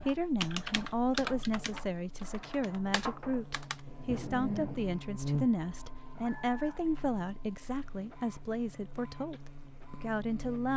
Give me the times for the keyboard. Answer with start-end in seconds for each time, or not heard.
0.0-3.8.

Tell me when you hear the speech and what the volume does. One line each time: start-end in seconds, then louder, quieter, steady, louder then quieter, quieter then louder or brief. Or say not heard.
0.0-10.7 steady.